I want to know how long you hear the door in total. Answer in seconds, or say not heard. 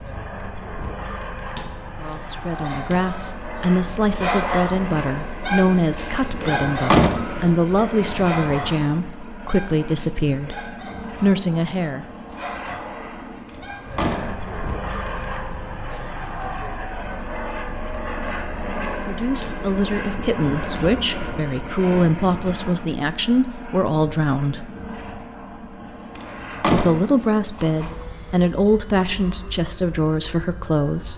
5 s.